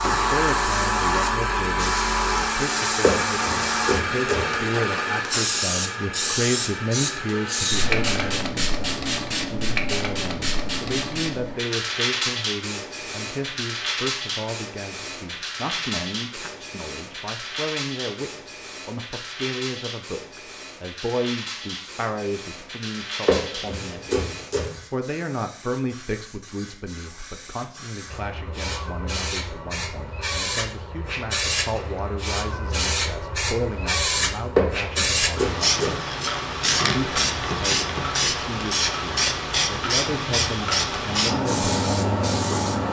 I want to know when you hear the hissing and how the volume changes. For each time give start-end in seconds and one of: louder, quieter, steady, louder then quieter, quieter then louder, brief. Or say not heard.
0.0-42.8 quieter then louder.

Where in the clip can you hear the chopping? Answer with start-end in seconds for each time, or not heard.
3.0-4.5, 23.2-24.8, 34.5-36.0.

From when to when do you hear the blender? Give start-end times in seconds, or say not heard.
0.0-8.4.